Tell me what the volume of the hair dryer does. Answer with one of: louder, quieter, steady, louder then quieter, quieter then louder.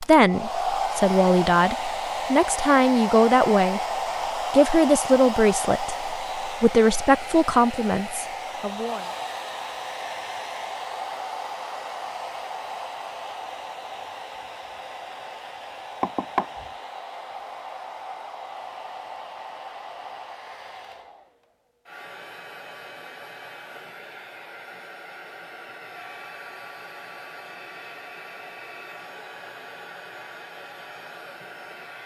quieter.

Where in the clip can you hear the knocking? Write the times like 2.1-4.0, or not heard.
16.0-16.5.